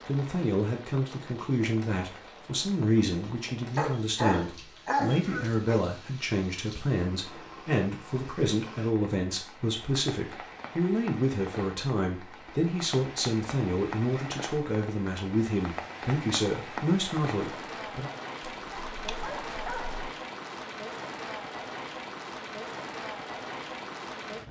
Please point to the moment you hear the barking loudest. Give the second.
5 s.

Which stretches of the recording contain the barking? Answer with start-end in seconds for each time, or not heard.
3.8-5.8, 18.6-20.1.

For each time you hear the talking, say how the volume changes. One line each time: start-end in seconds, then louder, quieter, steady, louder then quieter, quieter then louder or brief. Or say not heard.
0.1-18.1 steady.